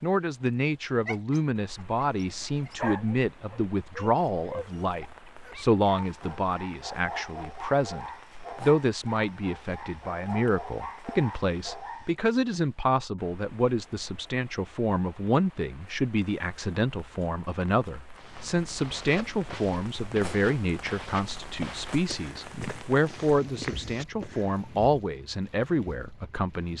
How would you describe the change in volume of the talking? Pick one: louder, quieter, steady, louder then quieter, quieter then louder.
steady.